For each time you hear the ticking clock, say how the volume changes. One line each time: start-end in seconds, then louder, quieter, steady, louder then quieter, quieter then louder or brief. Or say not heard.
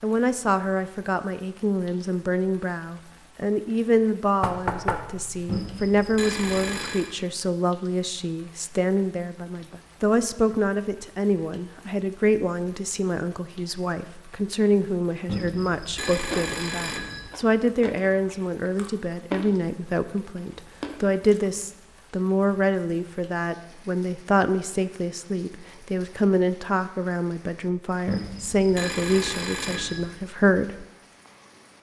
not heard.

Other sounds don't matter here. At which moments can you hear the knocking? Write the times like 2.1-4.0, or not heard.
4.4-5.5.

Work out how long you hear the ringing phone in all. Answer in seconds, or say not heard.
6 s.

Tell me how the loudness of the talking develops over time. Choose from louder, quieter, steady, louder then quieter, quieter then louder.
steady.